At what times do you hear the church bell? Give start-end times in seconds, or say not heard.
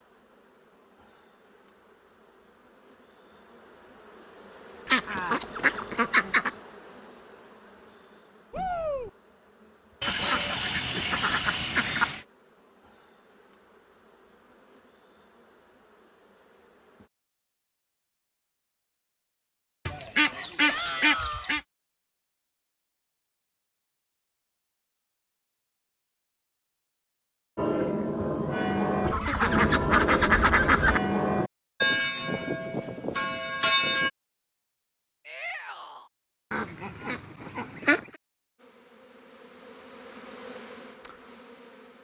27.6-34.1.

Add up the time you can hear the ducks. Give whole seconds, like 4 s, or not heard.
9 s.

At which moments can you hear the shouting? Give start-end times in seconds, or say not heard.
8.5-9.1, 20.6-21.5, 35.2-36.1.